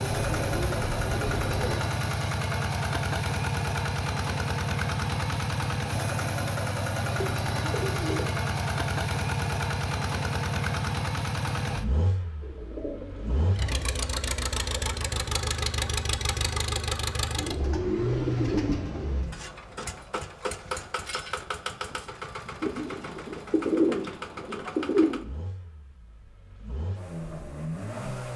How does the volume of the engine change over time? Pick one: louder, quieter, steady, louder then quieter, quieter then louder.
quieter.